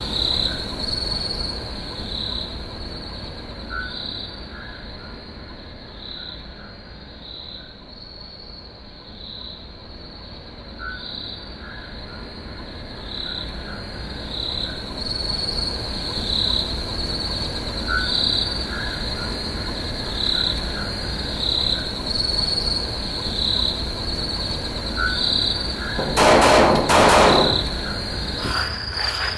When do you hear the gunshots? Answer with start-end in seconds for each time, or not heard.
25.9-27.6.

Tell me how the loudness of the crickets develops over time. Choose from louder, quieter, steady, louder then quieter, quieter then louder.
quieter then louder.